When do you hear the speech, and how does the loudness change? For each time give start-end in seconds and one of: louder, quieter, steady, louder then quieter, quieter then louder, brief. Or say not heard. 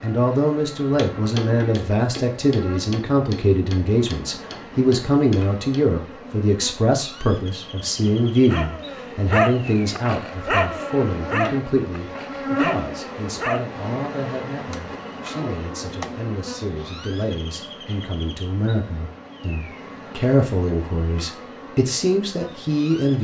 0.0-23.1 quieter then louder.